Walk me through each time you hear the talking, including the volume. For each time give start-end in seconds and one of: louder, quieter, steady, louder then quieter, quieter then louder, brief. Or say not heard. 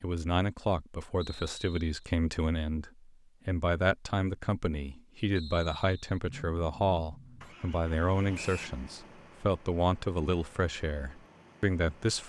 0.0-12.2 steady.